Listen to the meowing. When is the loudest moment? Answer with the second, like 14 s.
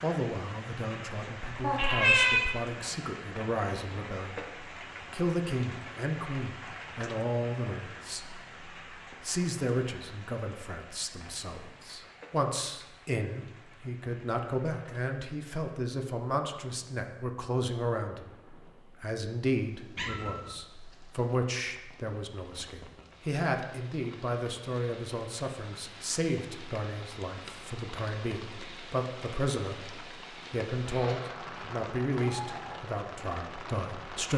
2 s.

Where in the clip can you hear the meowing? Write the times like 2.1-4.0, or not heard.
1.6-2.5, 19.9-20.6, 30.9-32.8.